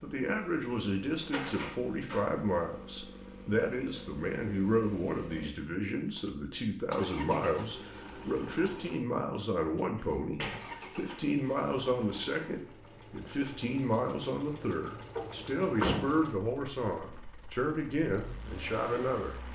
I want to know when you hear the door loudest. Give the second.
16 s.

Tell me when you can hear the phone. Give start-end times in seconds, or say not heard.
not heard.